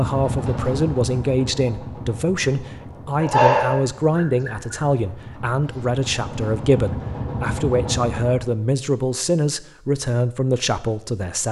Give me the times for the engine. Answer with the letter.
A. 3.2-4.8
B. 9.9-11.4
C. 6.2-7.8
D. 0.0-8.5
D.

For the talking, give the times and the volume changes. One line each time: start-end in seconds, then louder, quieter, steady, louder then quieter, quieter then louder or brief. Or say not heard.
0.0-11.4 steady.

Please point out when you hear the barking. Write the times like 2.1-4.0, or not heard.
3.2-4.8.